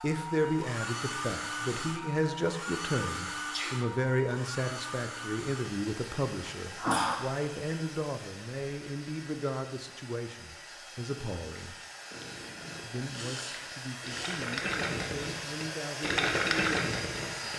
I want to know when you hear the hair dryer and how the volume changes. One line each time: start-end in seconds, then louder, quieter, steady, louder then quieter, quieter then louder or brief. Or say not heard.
0.0-17.5 quieter then louder.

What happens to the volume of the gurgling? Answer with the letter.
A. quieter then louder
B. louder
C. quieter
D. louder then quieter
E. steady
B.